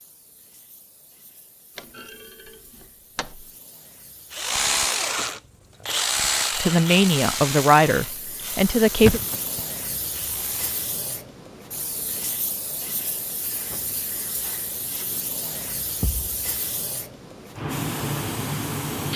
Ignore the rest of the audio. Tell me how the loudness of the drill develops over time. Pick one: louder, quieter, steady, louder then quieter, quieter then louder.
quieter.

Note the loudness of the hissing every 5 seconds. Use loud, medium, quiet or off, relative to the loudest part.
quiet, medium, medium, loud.